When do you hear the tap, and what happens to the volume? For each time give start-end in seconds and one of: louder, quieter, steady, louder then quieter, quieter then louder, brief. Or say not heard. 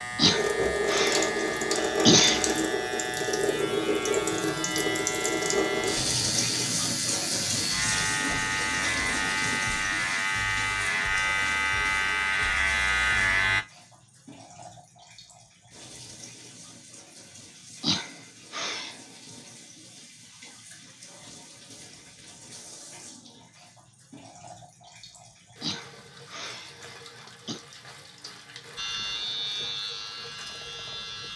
0.1-31.3 quieter.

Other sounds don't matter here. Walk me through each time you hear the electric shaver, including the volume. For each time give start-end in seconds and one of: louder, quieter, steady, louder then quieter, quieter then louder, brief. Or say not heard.
0.0-13.7 louder
28.8-31.3 brief.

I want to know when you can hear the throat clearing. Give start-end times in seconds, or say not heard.
0.1-2.6, 17.8-18.9, 25.6-27.6.